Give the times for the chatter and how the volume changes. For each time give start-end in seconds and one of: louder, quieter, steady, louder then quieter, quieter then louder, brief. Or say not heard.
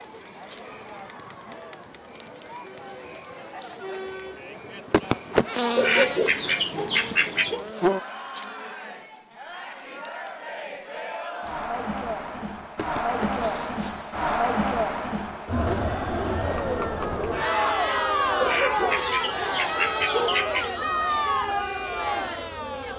0.0-22.9 louder.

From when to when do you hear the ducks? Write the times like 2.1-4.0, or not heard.
5.8-7.7, 18.4-20.7.